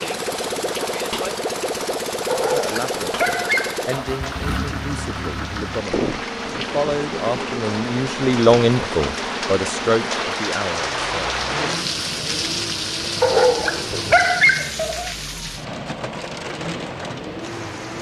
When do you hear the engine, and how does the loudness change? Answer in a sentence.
The engine can be heard from 0.0 to 17.9 s, getting quieter.